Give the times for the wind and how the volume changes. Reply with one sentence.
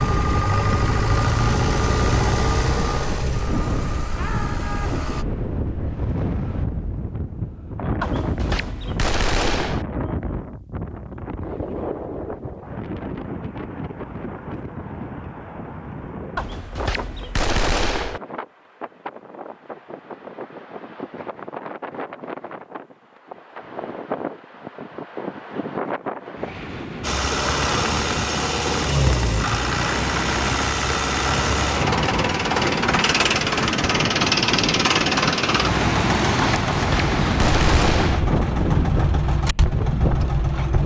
You can hear the wind from 0.0 to 40.8 s, getting quieter then louder.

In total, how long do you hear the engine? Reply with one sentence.
The engine can be heard for 19 seconds in total.